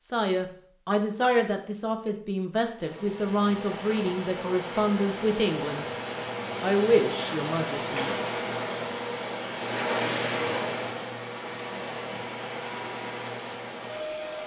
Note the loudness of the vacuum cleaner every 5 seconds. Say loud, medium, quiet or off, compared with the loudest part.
medium, loud, loud.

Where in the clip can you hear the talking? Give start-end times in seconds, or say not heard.
0.0-5.9, 6.6-8.1.